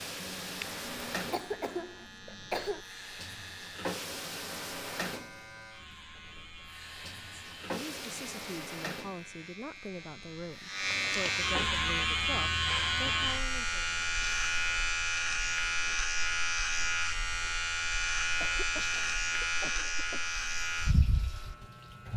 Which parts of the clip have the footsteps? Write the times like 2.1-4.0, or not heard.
not heard.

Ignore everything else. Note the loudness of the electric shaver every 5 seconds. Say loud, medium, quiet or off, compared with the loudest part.
quiet, quiet, loud, loud, medium.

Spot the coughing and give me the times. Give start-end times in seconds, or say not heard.
0.2-2.8, 18.4-20.4.